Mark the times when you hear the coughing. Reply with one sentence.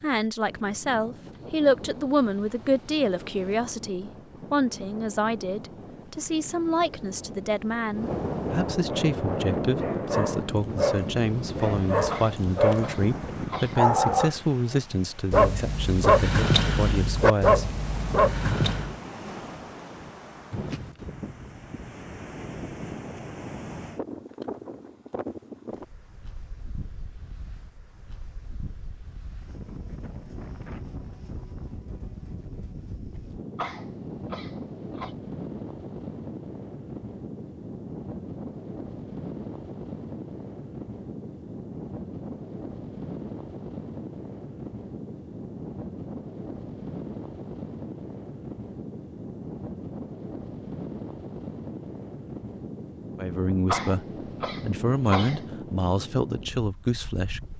You can hear the coughing from 12.1 to 13.8 s, from 33.5 to 35.1 s and from 53.6 to 55.5 s.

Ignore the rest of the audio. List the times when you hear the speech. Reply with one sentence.
You can hear the speech from 0.0 to 17.6 s and from 53.1 to 57.4 s.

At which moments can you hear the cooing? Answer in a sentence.
The cooing can't be heard in this clip.